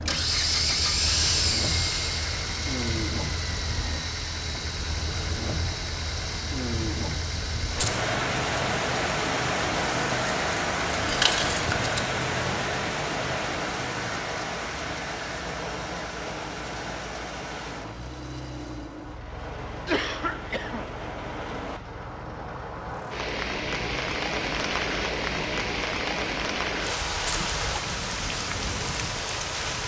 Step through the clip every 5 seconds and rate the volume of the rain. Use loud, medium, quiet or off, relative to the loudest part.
medium, loud, loud, medium, loud, loud.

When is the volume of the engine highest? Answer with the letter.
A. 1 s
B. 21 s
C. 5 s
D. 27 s
A.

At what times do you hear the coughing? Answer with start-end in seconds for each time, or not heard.
19.9-20.9.